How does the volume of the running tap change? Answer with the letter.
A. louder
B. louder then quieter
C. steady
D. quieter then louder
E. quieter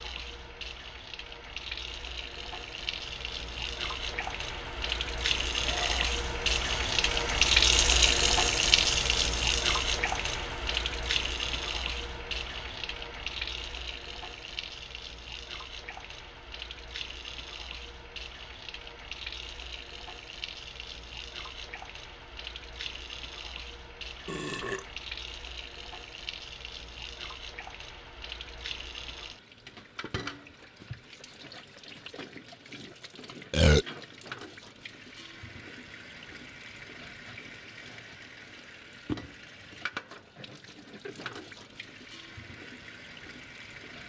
E.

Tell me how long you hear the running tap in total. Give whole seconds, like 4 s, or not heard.
44 s.